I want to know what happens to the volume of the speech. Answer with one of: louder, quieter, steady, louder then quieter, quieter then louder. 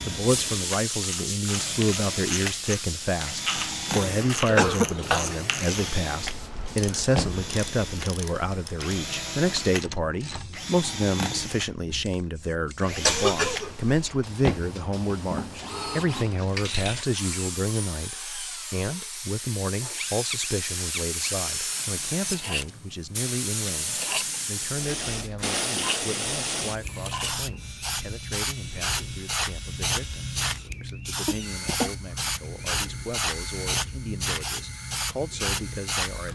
quieter.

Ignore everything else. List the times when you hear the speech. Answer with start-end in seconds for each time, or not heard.
0.1-36.2.